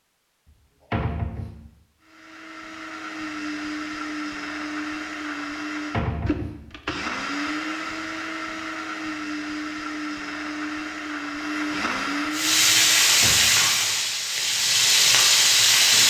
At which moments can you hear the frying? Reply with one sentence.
You can hear the frying from 12.3 to 16.0 s.